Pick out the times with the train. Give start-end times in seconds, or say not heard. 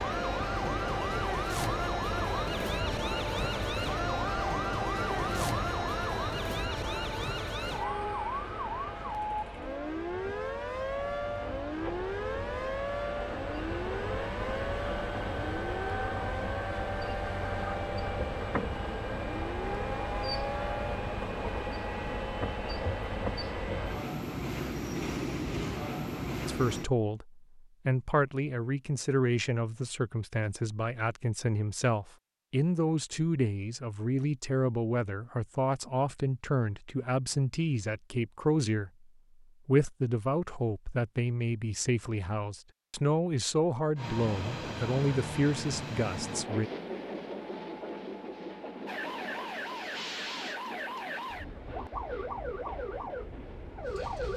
0.0-26.9, 44.0-54.3.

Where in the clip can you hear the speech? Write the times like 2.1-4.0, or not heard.
26.4-38.9, 39.6-46.7.